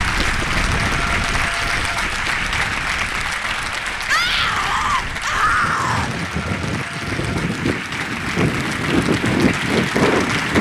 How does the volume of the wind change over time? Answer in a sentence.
The loudness of the wind goes down, then up.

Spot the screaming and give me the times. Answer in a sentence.
You can hear the screaming from 4.0 to 6.2 s.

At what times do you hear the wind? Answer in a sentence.
The wind can be heard from 0.0 to 10.5 s.